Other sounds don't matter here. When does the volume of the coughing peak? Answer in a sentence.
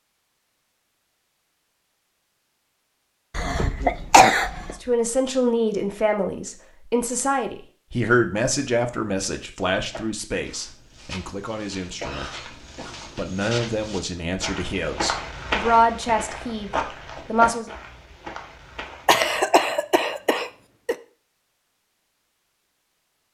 The volume of the coughing peaks at 4 seconds.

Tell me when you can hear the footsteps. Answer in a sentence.
You can hear the footsteps from 9.9 to 19.2 s.